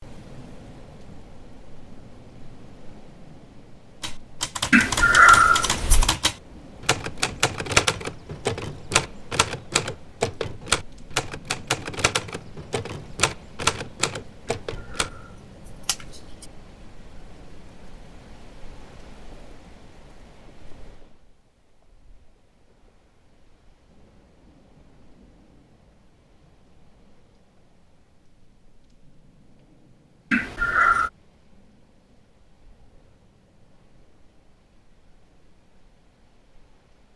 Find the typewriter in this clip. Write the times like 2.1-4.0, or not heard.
4.0-15.1.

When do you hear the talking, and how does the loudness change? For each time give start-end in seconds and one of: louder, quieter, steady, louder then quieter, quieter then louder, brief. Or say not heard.
not heard.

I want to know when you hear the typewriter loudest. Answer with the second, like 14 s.
8 s.